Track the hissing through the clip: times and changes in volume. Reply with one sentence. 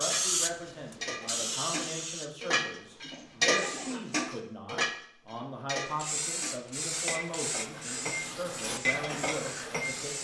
The hissing can be heard from 0.0 to 4.2 s, getting quieter then louder; and from 6.0 to 10.1 s, getting quieter.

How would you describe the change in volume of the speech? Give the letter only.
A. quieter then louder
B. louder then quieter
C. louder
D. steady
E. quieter
D.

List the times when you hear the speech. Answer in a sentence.
You can hear the speech from 0.0 to 10.1 s.